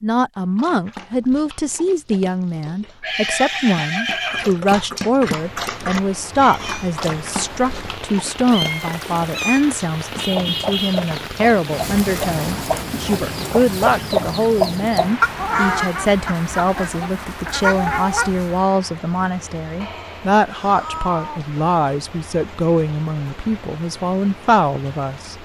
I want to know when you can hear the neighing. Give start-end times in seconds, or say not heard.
3.0-4.6.